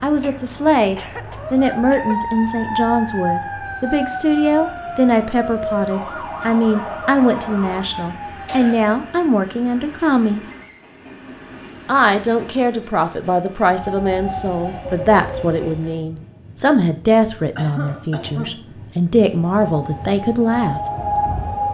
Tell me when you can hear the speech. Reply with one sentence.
You can hear the speech from 0.0 to 10.4 s and from 11.8 to 20.8 s.